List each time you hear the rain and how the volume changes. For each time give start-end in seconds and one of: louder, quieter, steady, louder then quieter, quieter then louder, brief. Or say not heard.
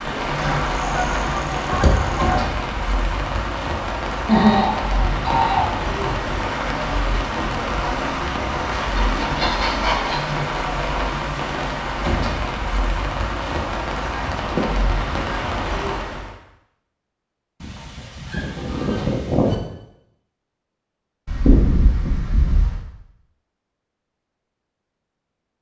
0.0-16.4 steady.